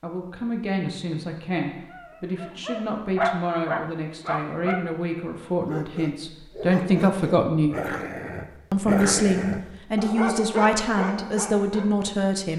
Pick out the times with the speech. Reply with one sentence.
You can hear the speech from 0.0 to 7.8 s and from 8.7 to 12.5 s.